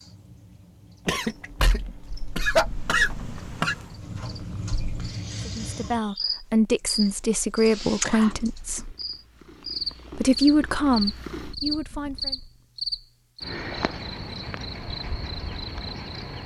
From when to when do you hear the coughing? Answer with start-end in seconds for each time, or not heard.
1.1-3.8.